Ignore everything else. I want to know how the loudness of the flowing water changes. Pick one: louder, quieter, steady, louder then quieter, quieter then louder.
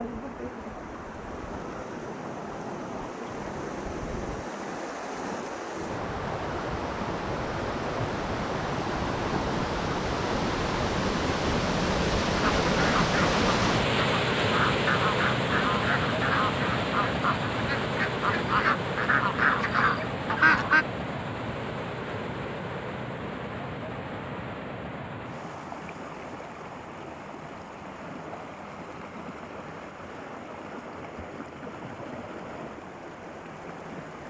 louder then quieter.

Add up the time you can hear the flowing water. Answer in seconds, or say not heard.
34 s.